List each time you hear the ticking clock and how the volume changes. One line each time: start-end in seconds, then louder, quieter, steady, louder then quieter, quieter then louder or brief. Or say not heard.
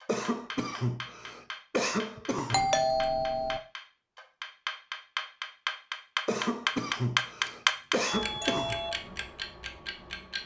0.0-10.4 louder then quieter.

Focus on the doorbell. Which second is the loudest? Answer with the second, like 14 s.
3 s.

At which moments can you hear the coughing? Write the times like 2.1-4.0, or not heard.
0.1-2.8, 6.2-8.8.